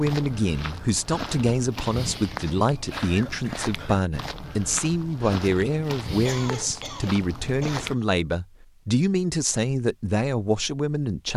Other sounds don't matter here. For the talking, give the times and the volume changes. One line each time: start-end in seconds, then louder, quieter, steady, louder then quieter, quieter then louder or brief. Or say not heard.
0.0-11.3 steady.